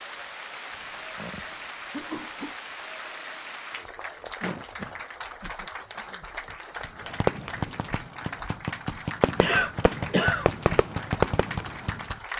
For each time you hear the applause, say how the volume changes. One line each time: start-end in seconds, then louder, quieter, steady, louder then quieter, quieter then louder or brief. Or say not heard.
0.0-12.3 steady.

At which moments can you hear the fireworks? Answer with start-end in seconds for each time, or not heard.
6.8-12.3.